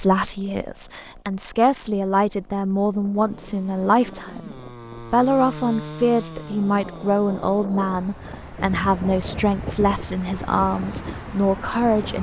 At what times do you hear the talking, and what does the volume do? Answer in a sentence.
You can hear the talking from 0.0 to 12.1 s, at a steady volume.